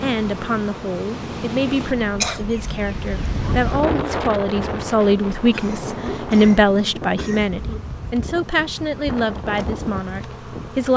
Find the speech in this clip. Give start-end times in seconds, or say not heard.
0.0-10.9.